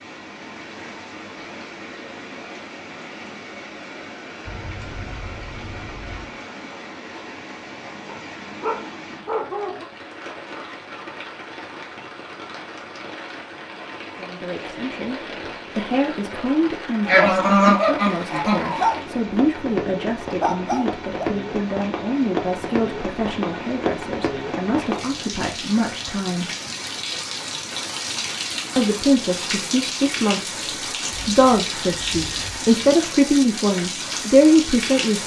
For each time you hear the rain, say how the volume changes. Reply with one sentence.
The rain can be heard from 0.0 to 35.2 s, getting louder.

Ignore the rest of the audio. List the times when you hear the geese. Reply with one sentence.
You can hear the geese from 4.5 to 6.3 s, from 17.1 to 18.9 s and from 31.1 to 32.7 s.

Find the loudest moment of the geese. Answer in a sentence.
The loudest moment of the geese is at 18 seconds.